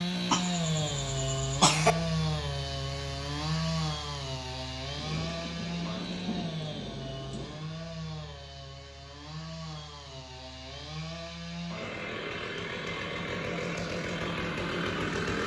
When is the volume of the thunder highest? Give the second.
6 s.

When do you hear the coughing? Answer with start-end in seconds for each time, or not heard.
0.3-1.9.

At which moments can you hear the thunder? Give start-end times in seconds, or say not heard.
5.0-7.7.